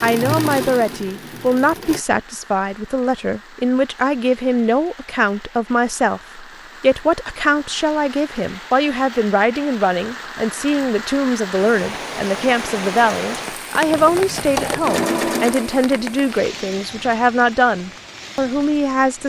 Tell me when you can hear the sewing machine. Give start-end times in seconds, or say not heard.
0.0-2.0, 13.8-16.8.